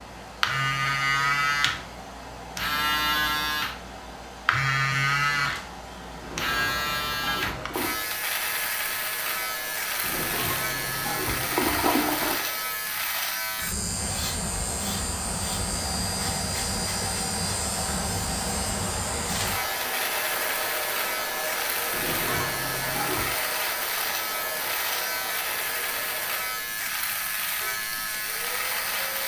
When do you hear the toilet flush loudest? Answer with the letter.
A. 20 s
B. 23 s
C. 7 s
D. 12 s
D.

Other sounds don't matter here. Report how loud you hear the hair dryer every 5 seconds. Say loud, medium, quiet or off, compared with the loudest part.
medium, medium, medium, loud, loud, medium.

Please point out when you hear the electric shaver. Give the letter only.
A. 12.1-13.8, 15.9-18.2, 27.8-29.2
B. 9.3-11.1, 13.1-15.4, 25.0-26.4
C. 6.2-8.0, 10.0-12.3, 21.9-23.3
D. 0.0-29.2
D.